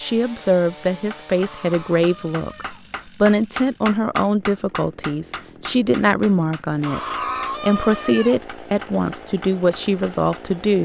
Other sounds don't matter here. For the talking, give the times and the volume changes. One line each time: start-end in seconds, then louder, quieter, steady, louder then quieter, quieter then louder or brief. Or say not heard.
0.0-10.8 steady.